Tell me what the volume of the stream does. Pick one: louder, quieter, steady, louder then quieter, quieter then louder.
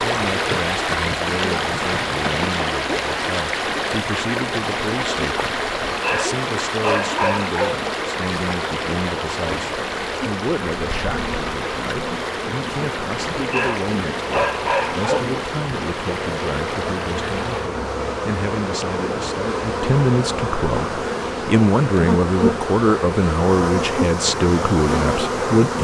quieter.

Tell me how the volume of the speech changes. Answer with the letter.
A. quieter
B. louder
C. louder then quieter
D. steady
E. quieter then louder
B.